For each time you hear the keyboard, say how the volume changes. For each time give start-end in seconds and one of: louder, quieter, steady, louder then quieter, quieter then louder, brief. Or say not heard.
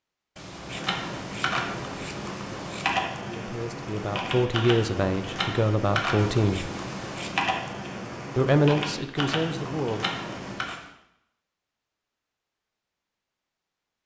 0.6-10.8 steady.